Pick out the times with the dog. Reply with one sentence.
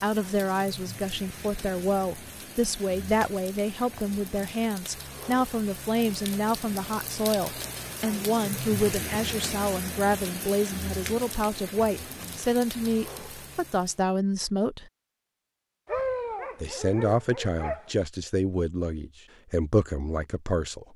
You can hear the dog from 15.8 to 17.9 s.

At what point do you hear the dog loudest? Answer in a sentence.
The volume of the dog peaks at 16 seconds.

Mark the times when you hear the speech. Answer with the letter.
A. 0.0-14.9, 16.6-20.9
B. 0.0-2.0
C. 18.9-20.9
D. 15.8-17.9
A.